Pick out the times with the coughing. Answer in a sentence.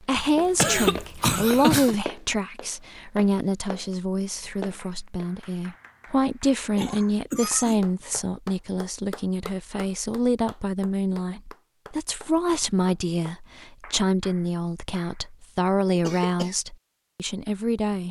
The coughing can be heard from 0.1 to 1.9 s, from 6.8 to 8.2 s and from 16.0 to 16.6 s.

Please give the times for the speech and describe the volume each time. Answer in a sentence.
You can hear the speech from 0.0 to 18.0 s, at a steady volume.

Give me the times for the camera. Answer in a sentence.
The camera can't be heard in this clip.